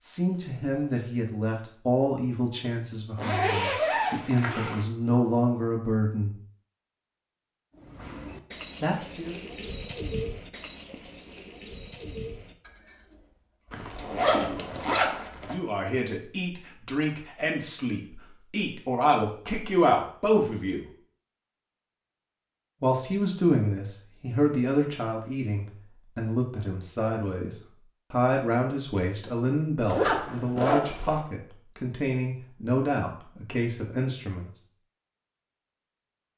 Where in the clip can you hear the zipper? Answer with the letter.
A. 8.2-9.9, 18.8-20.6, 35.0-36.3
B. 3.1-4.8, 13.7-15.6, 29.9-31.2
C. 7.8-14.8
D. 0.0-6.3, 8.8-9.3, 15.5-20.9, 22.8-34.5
B.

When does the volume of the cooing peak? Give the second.
10 s.